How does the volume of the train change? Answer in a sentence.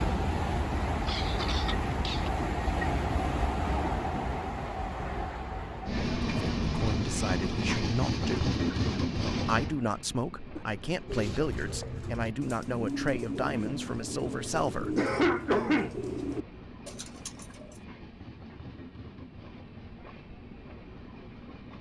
The loudness of the train goes down.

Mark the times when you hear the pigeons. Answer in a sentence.
The pigeons can be heard from 11.1 to 17.8 s.